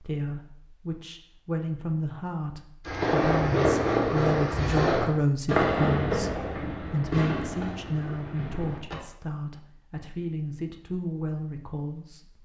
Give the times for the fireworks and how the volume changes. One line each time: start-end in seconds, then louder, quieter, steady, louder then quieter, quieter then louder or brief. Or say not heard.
2.9-8.9 quieter.